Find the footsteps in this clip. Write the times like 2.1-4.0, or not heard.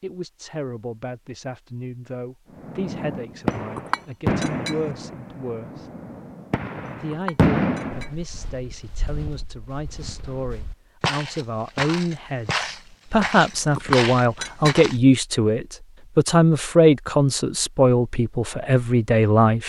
7.9-15.0.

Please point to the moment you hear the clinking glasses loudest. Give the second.
14 s.